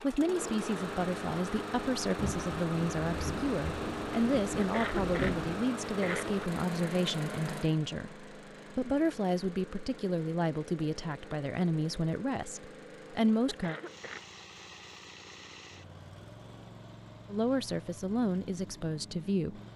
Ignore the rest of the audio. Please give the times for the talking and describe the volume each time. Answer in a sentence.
You can hear the talking from 0.0 to 13.8 s, at a steady volume; and briefly from 17.3 to 19.6 s.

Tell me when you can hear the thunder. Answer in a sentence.
The thunder can be heard from 2.1 to 5.7 s.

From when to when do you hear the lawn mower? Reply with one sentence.
You can hear the lawn mower from 0.0 to 19.7 s.